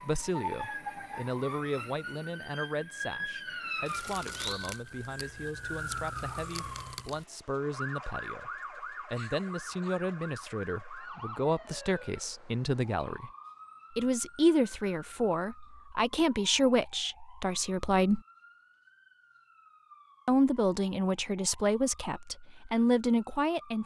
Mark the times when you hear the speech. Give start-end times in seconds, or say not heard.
0.0-13.3, 13.9-18.2, 20.2-23.8.